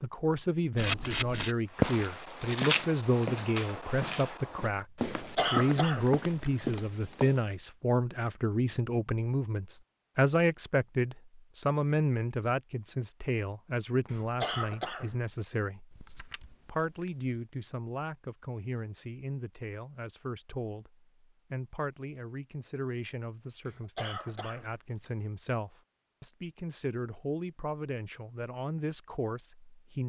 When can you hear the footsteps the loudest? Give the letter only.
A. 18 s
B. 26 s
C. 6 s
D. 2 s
D.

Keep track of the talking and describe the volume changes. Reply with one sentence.
The volume of the talking goes down.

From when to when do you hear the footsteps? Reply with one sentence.
You can hear the footsteps from 1.8 to 7.5 s.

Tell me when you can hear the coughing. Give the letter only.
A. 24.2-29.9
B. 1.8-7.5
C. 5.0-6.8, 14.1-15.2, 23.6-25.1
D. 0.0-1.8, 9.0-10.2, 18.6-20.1
C.